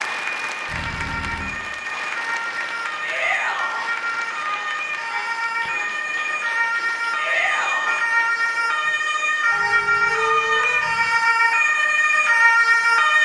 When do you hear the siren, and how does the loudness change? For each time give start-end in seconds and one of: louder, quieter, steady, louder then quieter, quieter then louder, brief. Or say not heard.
0.2-13.2 louder.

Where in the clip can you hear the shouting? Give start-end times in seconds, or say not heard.
3.0-3.9, 7.2-8.0.